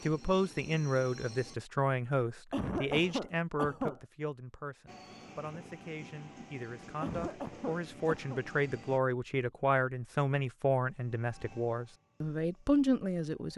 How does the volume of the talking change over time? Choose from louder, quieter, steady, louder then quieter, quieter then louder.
quieter then louder.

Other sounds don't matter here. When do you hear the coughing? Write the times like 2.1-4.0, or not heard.
2.5-4.0, 7.0-8.4.